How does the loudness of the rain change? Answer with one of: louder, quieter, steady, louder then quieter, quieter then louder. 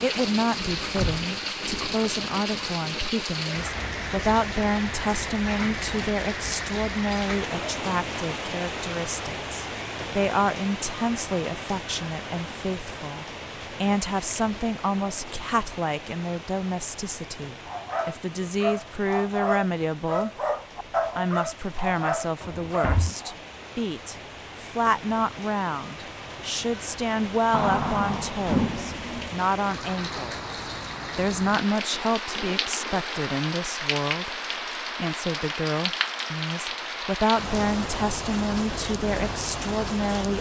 quieter then louder.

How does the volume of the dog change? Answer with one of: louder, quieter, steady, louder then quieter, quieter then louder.
steady.